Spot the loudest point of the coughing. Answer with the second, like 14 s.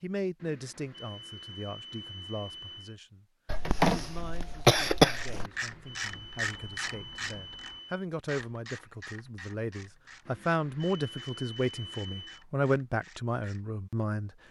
5 s.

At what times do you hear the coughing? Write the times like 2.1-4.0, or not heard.
3.5-5.5.